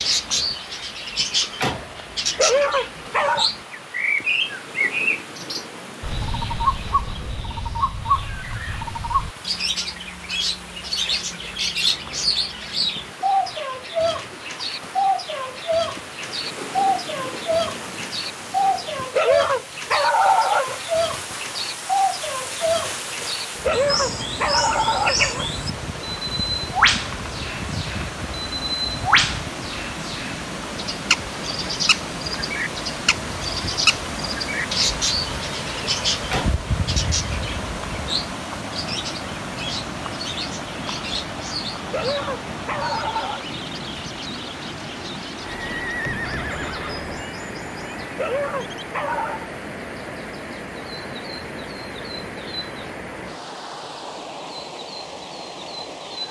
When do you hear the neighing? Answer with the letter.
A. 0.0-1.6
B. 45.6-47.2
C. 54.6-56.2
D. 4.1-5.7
B.